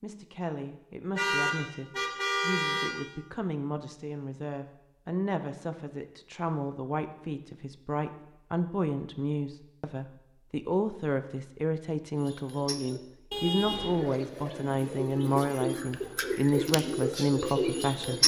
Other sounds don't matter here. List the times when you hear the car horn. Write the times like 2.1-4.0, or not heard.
1.1-2.9, 13.3-14.1.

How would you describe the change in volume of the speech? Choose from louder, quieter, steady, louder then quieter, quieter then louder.
louder.